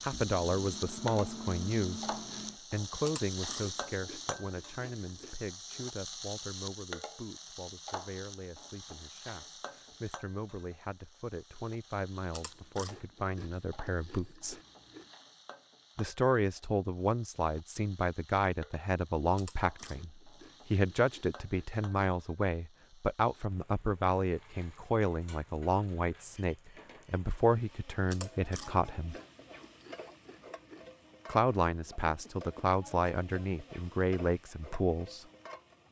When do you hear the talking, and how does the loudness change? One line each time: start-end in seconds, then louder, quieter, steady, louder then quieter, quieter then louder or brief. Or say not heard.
0.0-14.6 quieter then louder
15.9-29.1 steady
31.2-35.2 steady.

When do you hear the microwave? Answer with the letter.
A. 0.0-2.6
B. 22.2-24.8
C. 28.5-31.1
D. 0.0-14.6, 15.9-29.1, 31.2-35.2
A.